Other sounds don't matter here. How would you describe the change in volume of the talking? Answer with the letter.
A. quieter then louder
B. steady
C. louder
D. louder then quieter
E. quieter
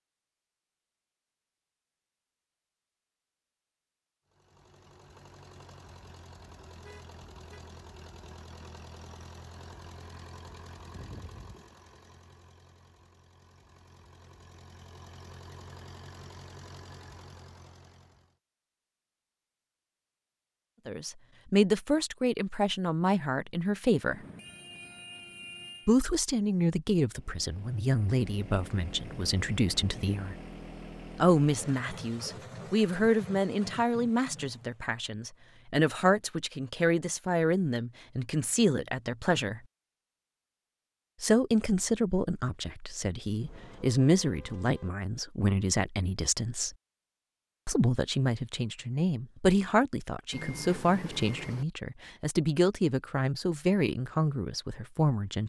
B.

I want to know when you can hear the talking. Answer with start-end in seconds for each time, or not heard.
20.9-24.2, 25.9-30.4, 31.1-39.6, 41.2-46.8, 47.6-55.4.